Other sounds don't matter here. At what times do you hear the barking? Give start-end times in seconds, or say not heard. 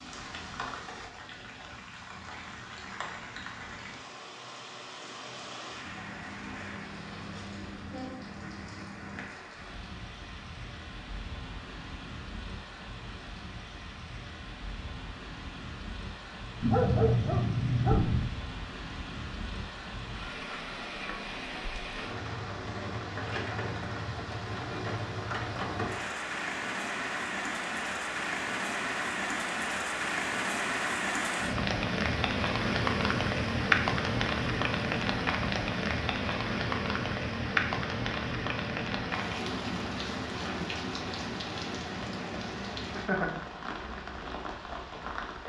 16.6-18.3.